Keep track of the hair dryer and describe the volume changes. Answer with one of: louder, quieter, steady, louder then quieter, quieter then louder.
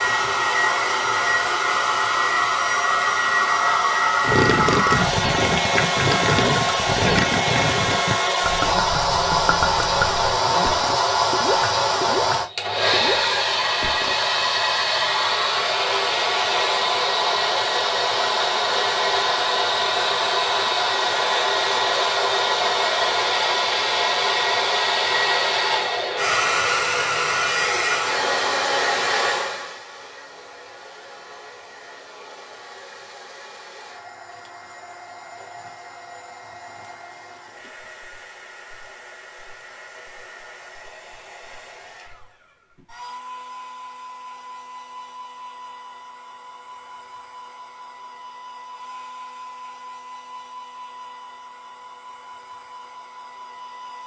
quieter.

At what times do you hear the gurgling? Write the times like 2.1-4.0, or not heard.
4.2-14.2.